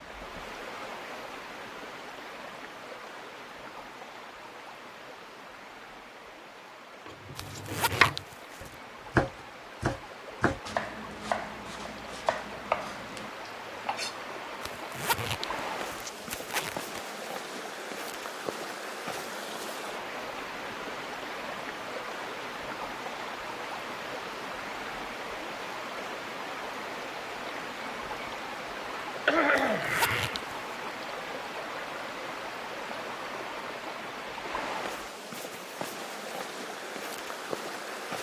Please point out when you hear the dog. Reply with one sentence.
You can't hear the dog here.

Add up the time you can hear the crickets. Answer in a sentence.
The crickets can't be heard in this clip.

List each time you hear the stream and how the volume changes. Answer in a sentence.
The stream can be heard from 0.0 to 38.1 s, getting louder.